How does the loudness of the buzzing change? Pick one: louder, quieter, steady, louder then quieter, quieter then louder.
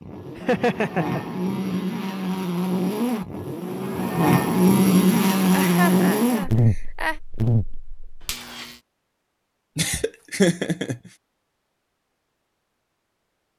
louder then quieter.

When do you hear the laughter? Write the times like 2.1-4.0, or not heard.
0.3-1.8, 5.5-7.2, 9.8-10.9.